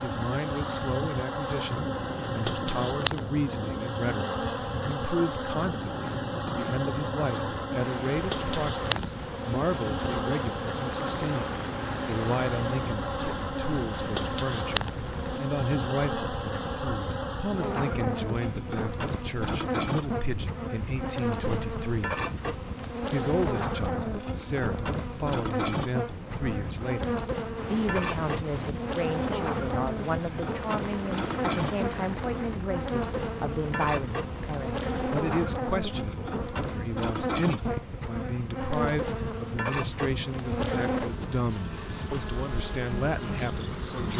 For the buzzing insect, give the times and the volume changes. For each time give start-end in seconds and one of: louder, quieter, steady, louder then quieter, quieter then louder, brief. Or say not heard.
0.0-44.1 steady.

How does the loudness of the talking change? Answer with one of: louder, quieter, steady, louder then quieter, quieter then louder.
steady.